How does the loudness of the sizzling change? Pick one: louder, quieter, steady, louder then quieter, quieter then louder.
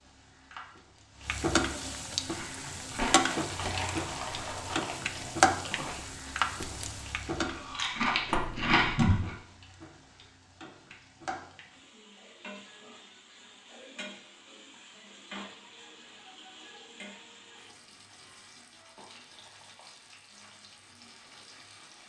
quieter.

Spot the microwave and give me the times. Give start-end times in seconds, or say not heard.
not heard.